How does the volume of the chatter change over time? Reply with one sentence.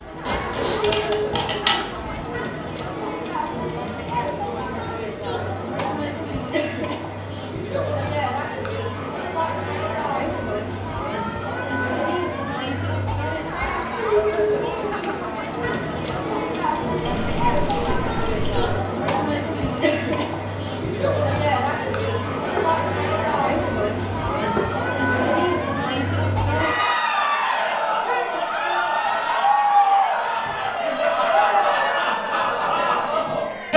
The loudness of the chatter goes up.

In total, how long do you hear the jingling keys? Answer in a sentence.
The jingling keys can be heard for 6 seconds in total.